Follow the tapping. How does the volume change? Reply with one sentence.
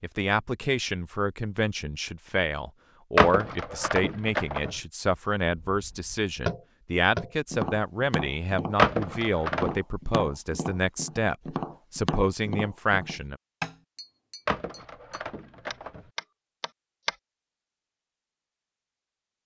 The loudness of the tapping goes down.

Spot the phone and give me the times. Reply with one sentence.
The phone can be heard from 3.1 to 4.8 s, from 8.8 to 9.8 s and from 14.4 to 16.1 s.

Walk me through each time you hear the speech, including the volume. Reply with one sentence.
The speech can be heard from 0.0 to 13.4 s, at a steady volume.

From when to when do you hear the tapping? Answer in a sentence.
You can hear the tapping from 5.7 to 17.1 s.